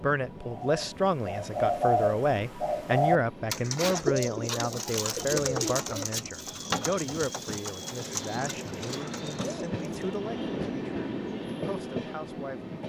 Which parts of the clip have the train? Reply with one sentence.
You can hear the train from 0.0 to 12.8 s.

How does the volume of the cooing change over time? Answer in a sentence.
The loudness of the cooing goes down.